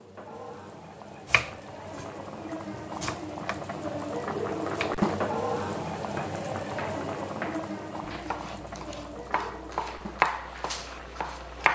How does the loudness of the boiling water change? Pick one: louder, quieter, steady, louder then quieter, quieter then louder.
louder then quieter.